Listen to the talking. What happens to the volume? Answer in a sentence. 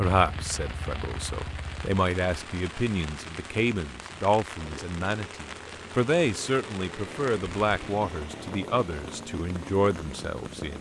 The volume of the talking stays about the same.